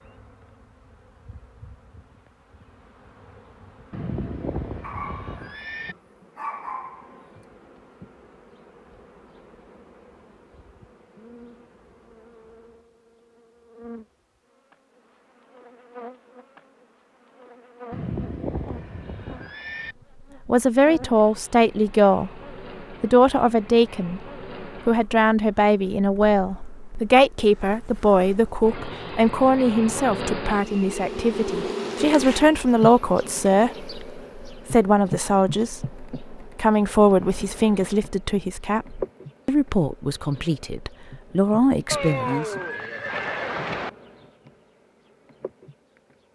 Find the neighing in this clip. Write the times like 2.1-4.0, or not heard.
3.9-6.0, 17.9-19.9, 41.9-43.9.